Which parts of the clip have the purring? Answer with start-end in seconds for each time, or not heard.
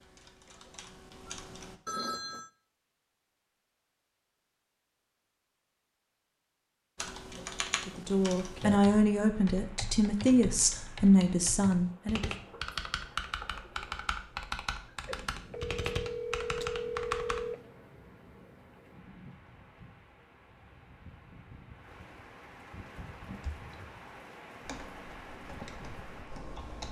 not heard.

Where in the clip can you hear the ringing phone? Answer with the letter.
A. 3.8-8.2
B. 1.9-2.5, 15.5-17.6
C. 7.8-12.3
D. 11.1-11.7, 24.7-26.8
B.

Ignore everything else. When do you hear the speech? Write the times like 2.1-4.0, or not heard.
7.8-12.3.